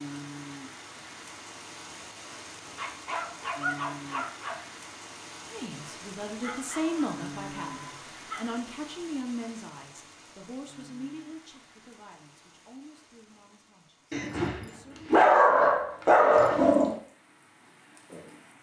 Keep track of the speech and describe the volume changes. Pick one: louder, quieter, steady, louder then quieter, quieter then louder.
quieter.